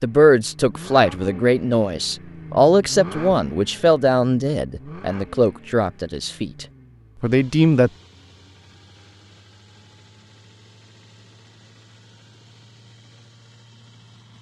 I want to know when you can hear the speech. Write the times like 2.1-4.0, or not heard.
0.0-7.9.